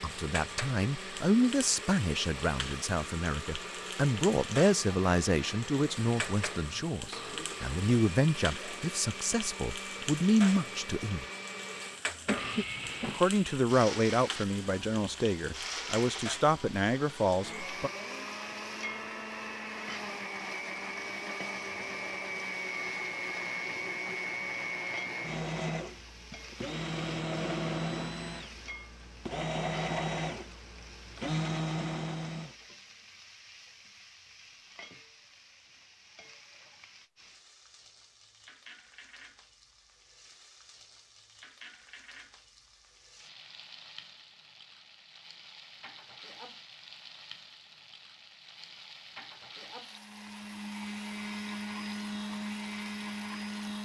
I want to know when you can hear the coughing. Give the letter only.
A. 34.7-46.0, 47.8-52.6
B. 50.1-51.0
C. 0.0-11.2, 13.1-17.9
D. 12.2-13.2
D.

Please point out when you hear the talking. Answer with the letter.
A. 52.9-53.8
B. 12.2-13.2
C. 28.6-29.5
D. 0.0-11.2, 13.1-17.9
D.